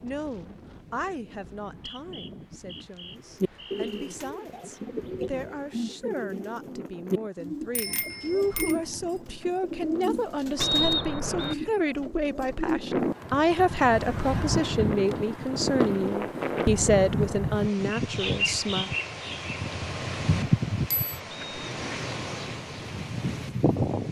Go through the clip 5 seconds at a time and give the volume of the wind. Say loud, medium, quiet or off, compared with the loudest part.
quiet, quiet, loud, loud, loud.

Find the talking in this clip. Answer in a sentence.
You can hear the talking from 0.0 to 18.9 s.